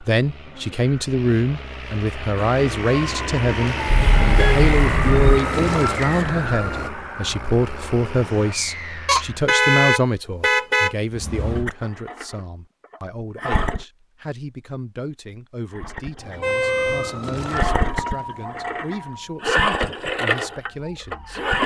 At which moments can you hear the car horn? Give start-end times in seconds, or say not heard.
3.9-5.4, 9.1-10.9, 16.4-17.1.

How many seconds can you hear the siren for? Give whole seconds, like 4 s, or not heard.
10 s.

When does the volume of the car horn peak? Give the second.
10 s.